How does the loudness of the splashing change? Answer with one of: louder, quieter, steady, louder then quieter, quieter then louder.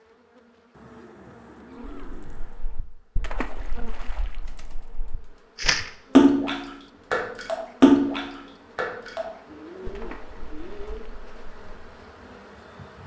louder then quieter.